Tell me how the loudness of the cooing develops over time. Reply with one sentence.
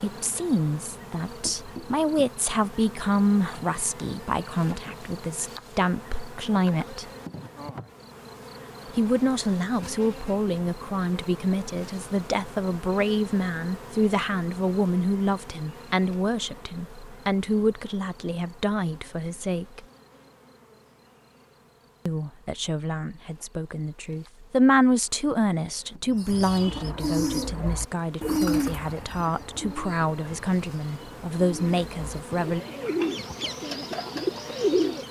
The loudness of the cooing goes down, then up.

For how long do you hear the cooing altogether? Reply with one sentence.
The cooing can be heard for 9 seconds in total.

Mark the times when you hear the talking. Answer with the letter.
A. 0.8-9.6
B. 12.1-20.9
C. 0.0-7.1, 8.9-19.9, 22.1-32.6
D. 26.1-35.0
C.